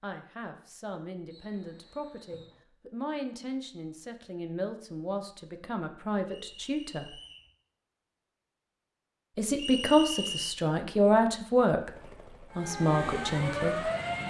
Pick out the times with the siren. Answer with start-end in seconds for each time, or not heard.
12.5-14.2.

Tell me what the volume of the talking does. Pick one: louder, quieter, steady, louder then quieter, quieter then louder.
louder.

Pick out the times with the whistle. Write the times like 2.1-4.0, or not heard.
1.3-2.6, 6.2-7.5, 9.6-10.6.